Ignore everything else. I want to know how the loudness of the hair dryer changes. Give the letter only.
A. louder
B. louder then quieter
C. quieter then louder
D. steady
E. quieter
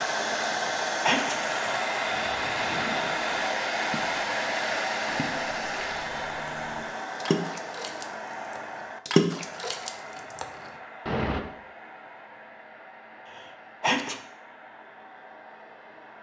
E.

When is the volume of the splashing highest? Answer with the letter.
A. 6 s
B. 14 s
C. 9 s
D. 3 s
C.